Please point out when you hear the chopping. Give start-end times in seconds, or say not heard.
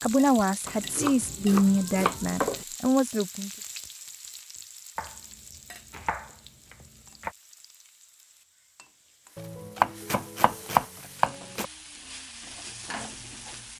0.7-2.6, 5.0-7.3, 9.3-11.7.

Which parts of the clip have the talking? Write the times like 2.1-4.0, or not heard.
0.0-3.5.